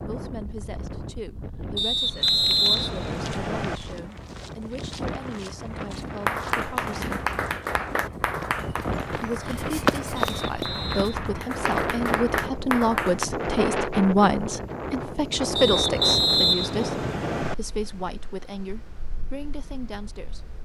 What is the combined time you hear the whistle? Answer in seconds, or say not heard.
5 s.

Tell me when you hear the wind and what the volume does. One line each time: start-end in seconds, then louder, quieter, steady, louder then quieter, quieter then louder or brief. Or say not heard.
0.0-20.6 louder then quieter.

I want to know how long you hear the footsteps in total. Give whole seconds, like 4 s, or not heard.
9 s.